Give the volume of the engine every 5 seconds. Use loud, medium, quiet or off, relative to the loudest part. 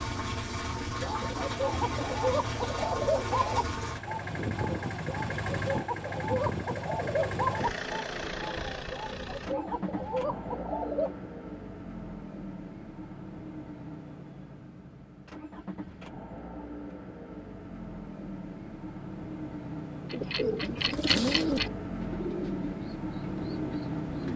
loud, loud, medium, medium, loud.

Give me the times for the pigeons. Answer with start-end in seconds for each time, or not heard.
1.0-11.2, 20.1-24.3.